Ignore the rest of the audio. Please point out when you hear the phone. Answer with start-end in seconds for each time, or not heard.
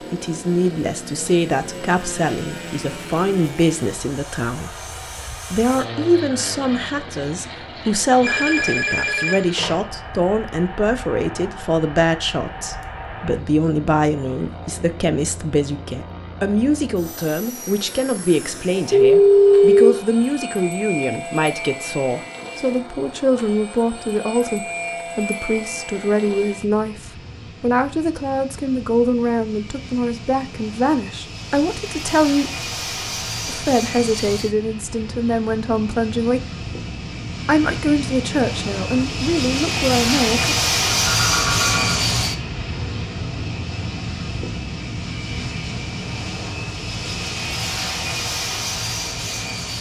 8.2-9.8, 18.9-19.9, 41.0-42.0.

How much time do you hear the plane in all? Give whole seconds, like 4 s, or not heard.
50 s.